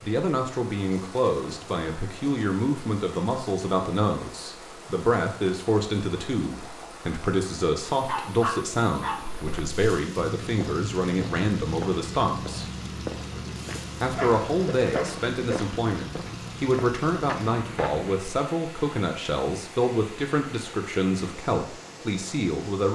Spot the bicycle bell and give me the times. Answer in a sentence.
The bicycle bell can't be heard in this clip.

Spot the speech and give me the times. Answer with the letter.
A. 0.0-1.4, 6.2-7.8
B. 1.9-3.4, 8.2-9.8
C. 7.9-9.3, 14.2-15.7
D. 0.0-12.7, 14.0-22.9
D.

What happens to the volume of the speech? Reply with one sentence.
The loudness of the speech stays about the same.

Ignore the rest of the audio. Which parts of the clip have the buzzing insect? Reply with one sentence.
You can't hear the buzzing insect here.